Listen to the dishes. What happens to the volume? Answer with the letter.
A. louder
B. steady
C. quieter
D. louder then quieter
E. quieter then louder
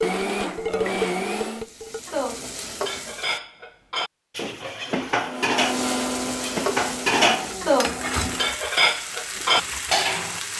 A.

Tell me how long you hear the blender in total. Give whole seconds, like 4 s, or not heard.
5 s.